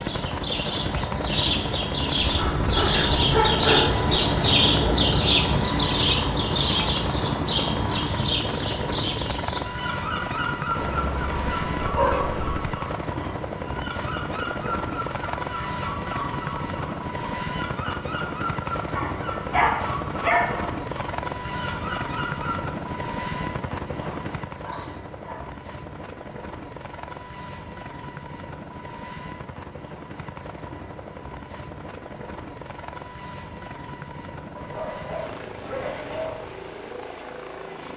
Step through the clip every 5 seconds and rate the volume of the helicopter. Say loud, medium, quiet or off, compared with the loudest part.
loud, loud, loud, loud, loud, medium, medium, medium.